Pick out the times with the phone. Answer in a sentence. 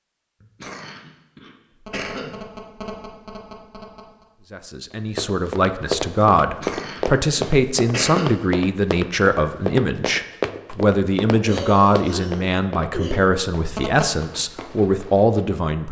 The phone can be heard from 1.7 to 4.2 s and from 13.6 to 14.2 s.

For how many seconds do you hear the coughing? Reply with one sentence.
The coughing can be heard for 6 seconds in total.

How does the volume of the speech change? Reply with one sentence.
The loudness of the speech stays about the same.